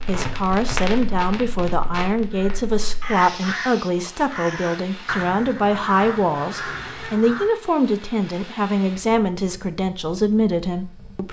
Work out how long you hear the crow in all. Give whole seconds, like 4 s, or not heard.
5 s.